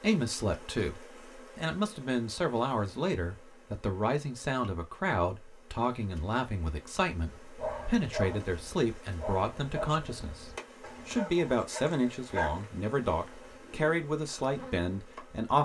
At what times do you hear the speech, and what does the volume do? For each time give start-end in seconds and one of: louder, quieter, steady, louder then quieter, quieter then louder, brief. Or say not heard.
0.0-15.5 steady.